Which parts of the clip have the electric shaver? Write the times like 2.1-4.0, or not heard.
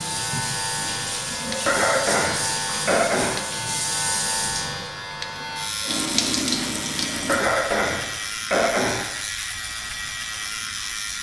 0.0-11.1.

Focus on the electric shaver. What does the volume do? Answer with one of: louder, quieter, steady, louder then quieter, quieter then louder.
steady.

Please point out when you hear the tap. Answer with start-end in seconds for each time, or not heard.
0.0-7.4.